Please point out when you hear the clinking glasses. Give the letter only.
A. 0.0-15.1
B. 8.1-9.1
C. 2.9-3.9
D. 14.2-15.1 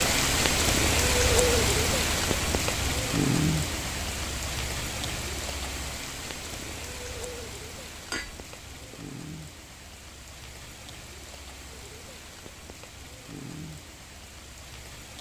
B.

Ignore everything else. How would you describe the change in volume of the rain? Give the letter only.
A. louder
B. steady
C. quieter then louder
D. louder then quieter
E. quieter
E.